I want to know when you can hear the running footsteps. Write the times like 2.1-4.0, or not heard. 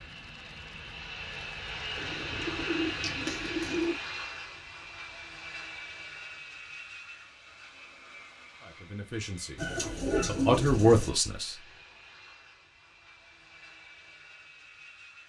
not heard.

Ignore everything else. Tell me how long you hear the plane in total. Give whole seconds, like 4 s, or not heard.
15 s.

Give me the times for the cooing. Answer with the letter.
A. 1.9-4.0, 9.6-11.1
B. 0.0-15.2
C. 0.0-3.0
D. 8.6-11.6
A.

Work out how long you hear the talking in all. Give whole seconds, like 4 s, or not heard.
3 s.